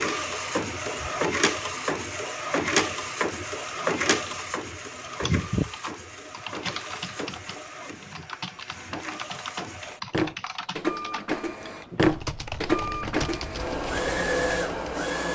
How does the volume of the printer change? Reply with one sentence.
The volume of the printer goes down, then up.